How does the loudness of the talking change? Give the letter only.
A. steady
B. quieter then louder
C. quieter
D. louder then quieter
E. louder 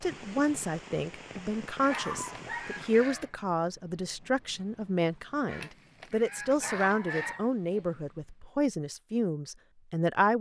A.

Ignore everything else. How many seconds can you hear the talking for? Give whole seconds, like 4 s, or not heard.
10 s.